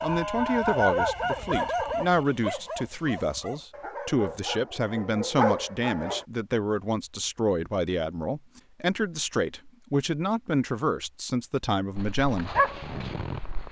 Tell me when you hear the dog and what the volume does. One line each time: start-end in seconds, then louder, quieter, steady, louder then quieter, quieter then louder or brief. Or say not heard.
0.0-6.2 quieter then louder
11.9-13.6 brief.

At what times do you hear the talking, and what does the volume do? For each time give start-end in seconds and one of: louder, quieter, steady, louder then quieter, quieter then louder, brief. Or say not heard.
0.0-12.5 steady.